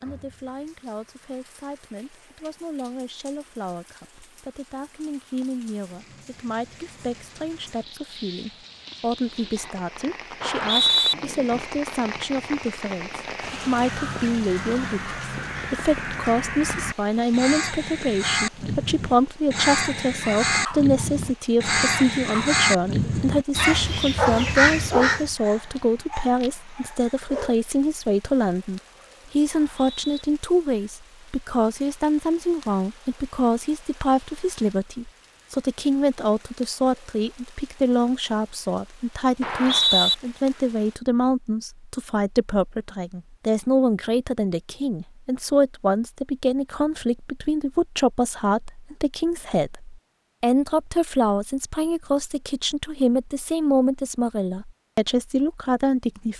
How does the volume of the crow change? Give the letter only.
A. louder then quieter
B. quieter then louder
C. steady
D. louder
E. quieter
D.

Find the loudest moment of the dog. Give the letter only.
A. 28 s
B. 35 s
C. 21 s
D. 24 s
D.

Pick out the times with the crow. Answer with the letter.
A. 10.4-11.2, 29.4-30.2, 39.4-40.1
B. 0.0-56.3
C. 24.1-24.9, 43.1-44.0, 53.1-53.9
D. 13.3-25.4
D.